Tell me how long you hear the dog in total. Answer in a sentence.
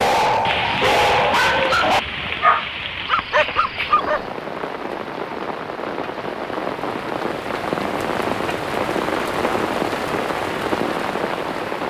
The dog can be heard for 4 seconds in total.